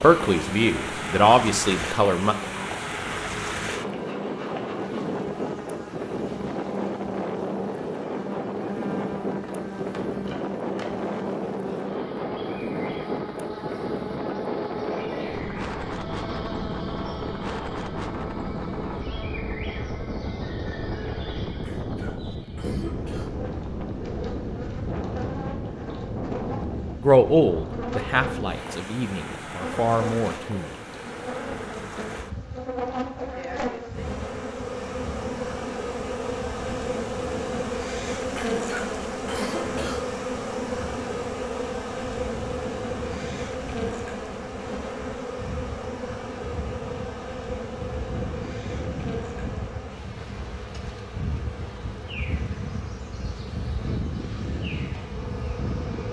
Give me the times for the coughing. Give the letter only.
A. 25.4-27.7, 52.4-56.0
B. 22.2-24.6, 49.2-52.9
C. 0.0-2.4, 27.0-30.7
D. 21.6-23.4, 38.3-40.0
D.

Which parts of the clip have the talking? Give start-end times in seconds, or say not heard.
0.0-2.4, 27.0-30.7.